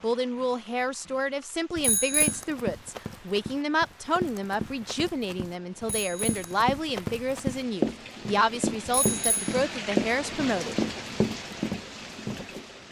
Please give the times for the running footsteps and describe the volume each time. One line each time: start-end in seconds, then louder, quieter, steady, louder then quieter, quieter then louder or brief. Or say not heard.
1.9-12.6 quieter then louder.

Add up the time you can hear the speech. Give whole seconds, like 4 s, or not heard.
11 s.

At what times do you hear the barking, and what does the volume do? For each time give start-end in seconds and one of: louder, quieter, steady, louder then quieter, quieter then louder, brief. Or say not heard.
not heard.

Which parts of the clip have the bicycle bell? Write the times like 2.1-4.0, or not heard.
1.8-2.4, 5.8-6.6, 8.8-9.4.